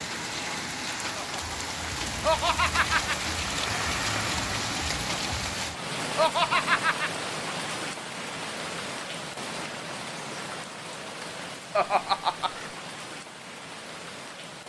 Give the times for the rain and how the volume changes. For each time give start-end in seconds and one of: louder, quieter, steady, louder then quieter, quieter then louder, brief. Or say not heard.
0.0-14.6 quieter.